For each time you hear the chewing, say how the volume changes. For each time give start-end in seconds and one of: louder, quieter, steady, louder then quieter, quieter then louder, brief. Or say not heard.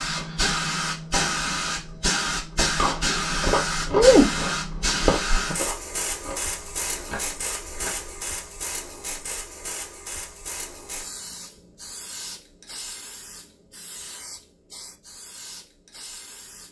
2.8-8.2 quieter.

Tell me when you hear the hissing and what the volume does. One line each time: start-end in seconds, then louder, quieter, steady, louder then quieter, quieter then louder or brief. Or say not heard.
0.0-16.6 quieter.